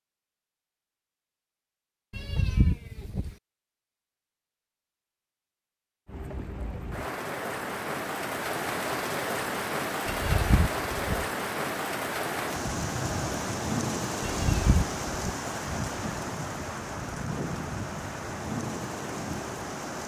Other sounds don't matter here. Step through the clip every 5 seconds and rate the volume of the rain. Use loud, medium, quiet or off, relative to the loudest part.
off, loud, loud, loud.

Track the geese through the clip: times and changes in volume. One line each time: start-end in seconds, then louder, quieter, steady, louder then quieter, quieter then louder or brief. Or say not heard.
not heard.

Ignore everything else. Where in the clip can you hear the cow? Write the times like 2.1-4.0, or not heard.
not heard.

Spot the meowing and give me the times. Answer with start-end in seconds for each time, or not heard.
2.1-3.4, 10.1-11.2, 14.2-15.3.